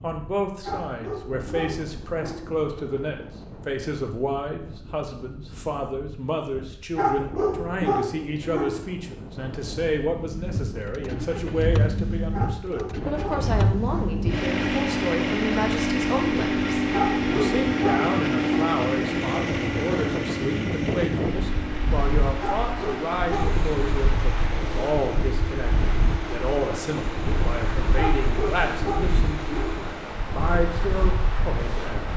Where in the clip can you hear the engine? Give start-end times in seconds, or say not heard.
10.3-29.9.